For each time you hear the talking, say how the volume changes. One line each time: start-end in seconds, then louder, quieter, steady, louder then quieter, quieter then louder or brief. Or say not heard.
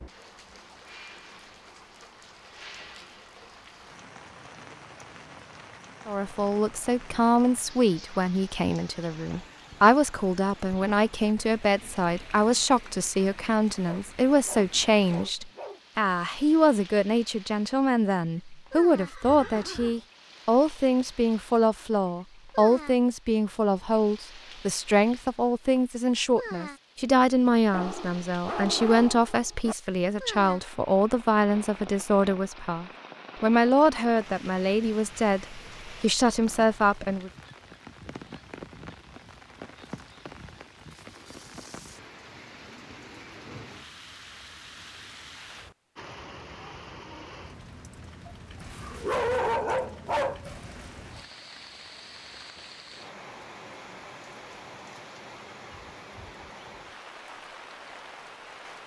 6.0-37.3 steady.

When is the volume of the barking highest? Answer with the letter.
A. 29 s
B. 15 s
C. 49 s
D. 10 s
C.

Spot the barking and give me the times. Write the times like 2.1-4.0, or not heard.
13.8-15.8, 27.7-29.8, 48.2-50.8.